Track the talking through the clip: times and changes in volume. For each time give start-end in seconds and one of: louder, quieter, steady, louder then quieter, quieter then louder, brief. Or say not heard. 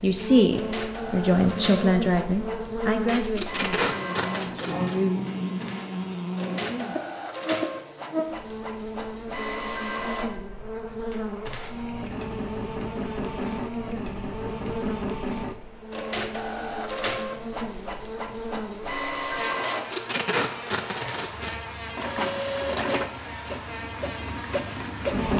0.0-5.2 quieter.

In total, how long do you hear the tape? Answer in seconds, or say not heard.
4 s.